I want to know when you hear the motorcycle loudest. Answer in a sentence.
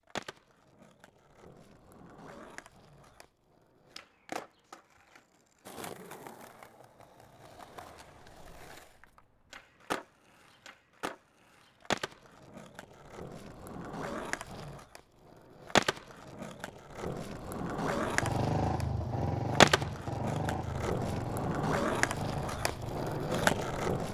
The volume of the motorcycle peaks at 19 seconds.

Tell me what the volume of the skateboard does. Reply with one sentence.
The volume of the skateboard goes up.